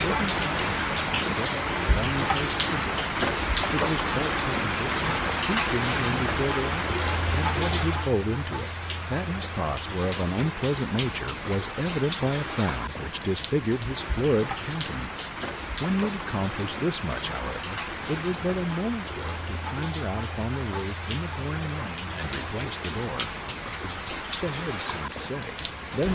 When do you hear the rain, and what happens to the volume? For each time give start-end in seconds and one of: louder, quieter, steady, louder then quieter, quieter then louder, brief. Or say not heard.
0.0-26.1 quieter.